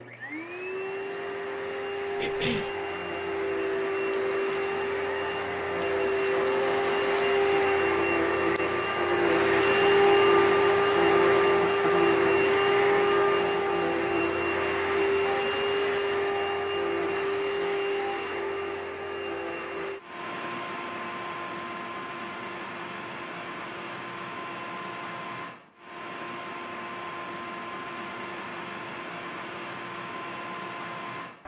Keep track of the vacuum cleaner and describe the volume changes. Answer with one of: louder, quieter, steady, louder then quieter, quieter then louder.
louder then quieter.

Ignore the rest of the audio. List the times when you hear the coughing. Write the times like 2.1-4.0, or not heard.
2.1-2.8.